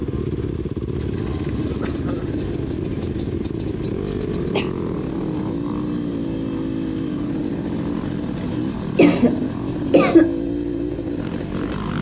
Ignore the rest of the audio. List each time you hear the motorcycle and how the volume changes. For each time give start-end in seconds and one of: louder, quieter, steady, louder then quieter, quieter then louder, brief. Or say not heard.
0.0-11.9 steady.